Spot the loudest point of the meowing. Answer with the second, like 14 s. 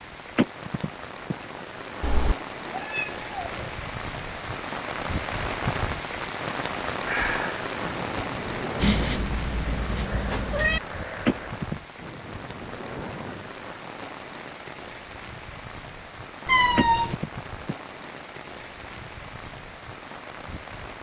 17 s.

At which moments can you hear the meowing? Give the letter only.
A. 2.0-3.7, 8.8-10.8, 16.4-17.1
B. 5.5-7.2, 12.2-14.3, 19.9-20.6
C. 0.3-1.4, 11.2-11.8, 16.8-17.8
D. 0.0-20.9
A.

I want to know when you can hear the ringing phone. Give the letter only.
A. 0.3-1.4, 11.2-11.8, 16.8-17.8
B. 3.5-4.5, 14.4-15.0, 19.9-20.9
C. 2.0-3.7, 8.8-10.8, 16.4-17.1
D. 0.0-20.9
A.